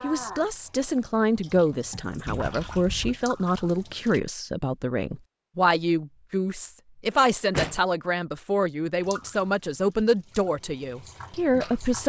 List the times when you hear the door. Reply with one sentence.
The door can be heard from 2.2 to 3.1 s and from 7.1 to 7.8 s.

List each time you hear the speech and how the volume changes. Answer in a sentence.
The speech can be heard from 0.0 to 12.0 s, at a steady volume.